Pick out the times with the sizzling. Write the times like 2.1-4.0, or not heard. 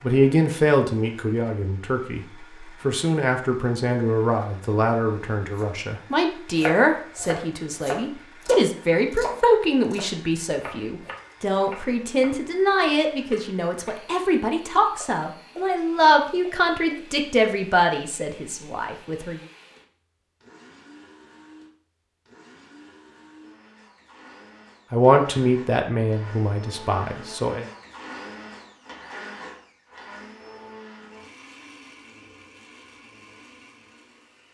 not heard.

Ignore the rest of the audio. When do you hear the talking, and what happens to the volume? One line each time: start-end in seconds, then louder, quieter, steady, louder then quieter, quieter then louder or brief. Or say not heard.
0.0-19.4 steady
24.9-27.6 brief.